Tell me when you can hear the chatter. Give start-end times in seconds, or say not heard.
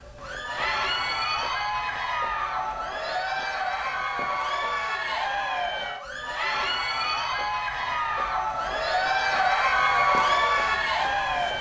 0.1-11.5.